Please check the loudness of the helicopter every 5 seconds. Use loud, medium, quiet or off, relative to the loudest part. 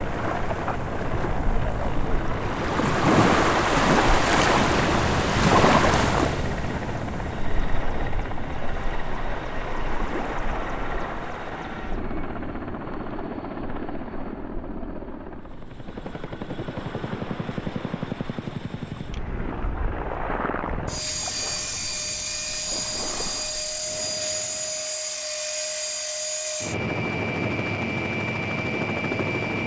medium, medium, medium, medium, loud, loud.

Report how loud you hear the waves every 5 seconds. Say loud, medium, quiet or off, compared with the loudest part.
loud, loud, quiet, quiet, quiet, off.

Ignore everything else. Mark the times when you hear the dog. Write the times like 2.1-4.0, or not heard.
not heard.